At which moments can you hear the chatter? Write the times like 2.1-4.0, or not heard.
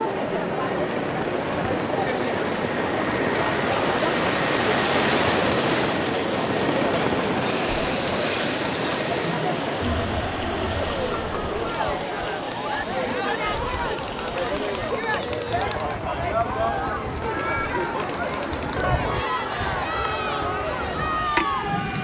0.0-21.9.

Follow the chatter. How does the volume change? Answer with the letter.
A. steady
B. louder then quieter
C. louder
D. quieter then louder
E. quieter
A.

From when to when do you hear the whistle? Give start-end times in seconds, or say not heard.
not heard.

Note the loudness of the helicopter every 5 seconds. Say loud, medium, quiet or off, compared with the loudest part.
loud, loud, medium, medium, medium.